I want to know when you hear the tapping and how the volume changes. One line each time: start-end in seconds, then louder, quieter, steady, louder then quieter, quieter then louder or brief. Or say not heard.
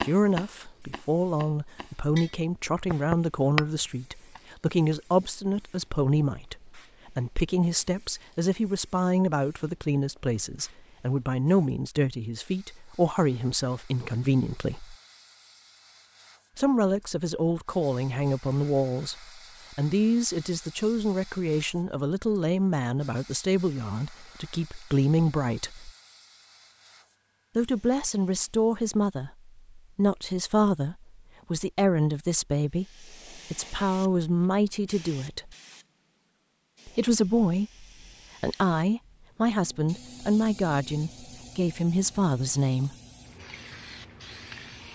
0.0-4.4 louder.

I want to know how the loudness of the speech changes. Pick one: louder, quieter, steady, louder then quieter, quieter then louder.
steady.